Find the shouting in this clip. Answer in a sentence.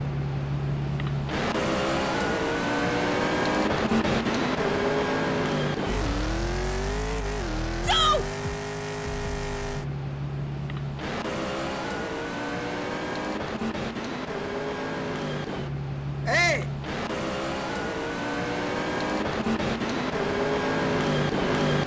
You can hear the shouting from 7.8 to 8.2 s and from 16.2 to 16.7 s.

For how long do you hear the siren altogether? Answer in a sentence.
You can't hear the siren here.